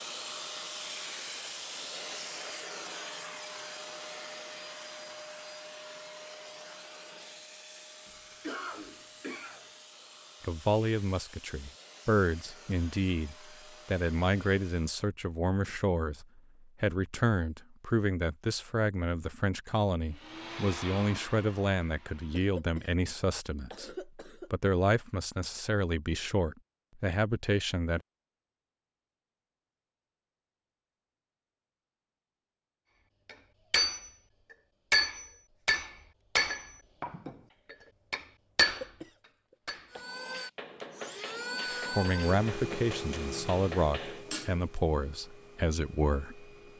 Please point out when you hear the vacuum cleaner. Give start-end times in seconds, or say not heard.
0.0-15.1, 20.1-22.5, 39.9-46.7.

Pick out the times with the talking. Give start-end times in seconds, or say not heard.
10.4-28.0, 41.9-46.5.